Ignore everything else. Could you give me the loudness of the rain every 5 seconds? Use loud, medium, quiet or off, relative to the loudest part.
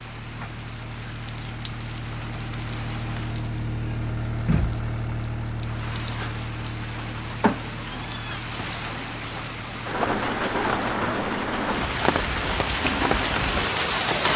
quiet, medium, loud.